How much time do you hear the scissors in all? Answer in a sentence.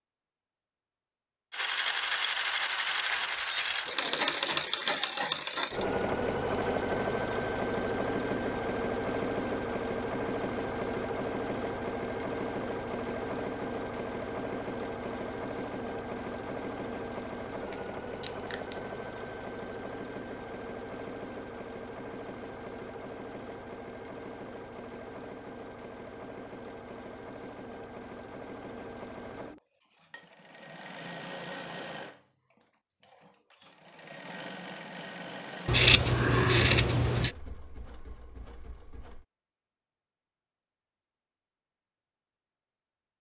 The scissors can be heard for 3 seconds in total.